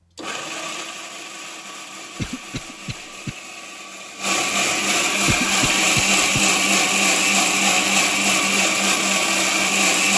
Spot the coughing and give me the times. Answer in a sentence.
You can hear the coughing from 2.1 to 3.4 s and from 5.2 to 6.4 s.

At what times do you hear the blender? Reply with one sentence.
You can hear the blender from 0.1 to 10.1 s.